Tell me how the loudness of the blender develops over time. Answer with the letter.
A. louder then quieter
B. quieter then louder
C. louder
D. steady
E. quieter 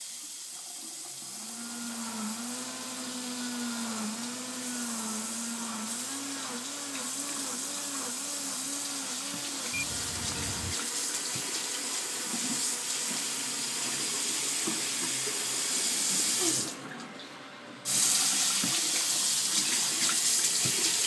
E.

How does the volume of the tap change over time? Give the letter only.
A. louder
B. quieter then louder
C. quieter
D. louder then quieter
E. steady
A.